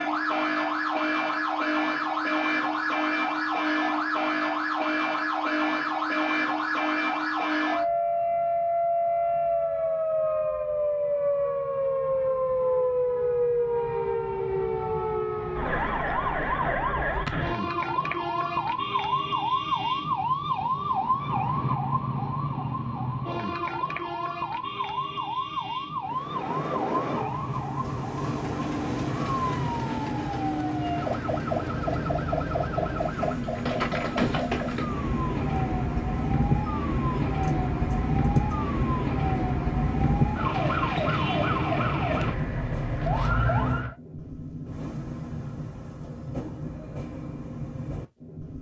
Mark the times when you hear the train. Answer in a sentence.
You can hear the train from 26.0 to 48.5 s.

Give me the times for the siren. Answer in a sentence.
The siren can be heard from 0.0 to 44.0 s.